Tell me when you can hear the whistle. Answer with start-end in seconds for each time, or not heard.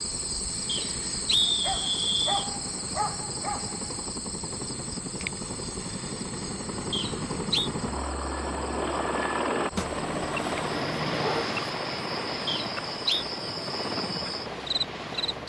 0.7-2.5, 6.9-7.7, 12.4-13.2.